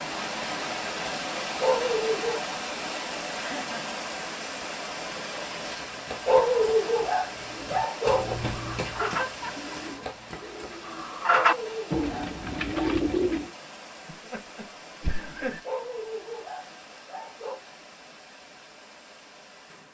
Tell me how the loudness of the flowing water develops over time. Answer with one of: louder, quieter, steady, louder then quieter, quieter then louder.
quieter.